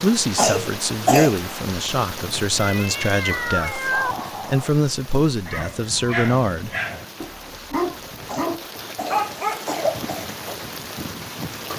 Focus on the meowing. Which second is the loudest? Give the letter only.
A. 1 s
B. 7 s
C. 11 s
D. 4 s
D.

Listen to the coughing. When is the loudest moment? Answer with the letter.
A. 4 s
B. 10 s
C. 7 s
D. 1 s
D.